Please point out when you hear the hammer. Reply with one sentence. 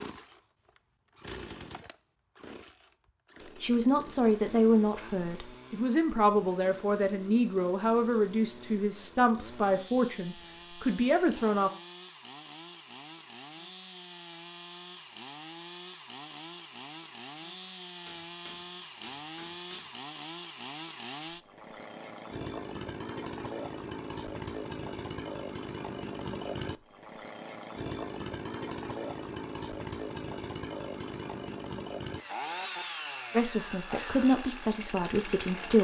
The hammer can be heard from 17.6 to 20.0 s.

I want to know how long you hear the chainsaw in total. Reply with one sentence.
You can hear the chainsaw for 36 seconds altogether.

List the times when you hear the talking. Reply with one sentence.
You can hear the talking from 3.6 to 11.7 s and from 33.3 to 35.7 s.